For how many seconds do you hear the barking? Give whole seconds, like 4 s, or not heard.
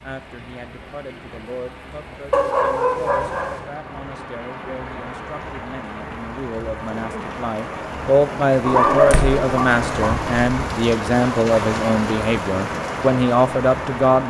3 s.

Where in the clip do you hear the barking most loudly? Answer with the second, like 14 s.
9 s.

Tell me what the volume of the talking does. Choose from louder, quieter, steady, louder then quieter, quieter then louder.
louder.